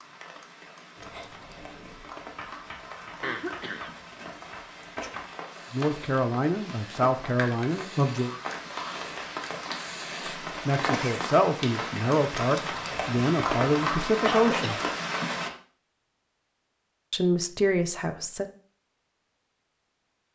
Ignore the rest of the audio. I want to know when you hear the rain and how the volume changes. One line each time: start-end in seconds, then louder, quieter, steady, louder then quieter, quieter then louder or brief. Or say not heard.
0.0-15.5 louder.